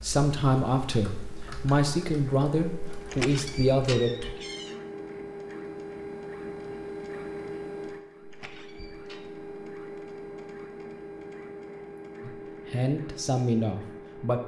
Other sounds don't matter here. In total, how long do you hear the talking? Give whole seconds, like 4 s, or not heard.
6 s.